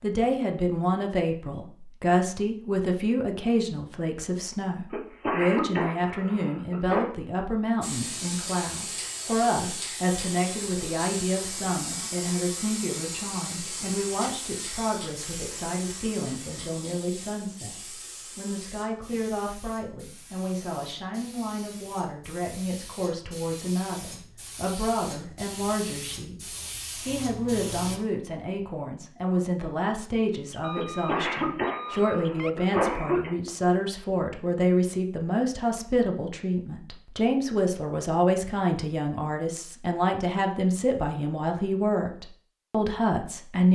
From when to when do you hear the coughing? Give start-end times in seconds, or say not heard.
4.9-7.1, 30.8-33.3.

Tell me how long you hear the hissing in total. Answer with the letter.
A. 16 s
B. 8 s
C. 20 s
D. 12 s
C.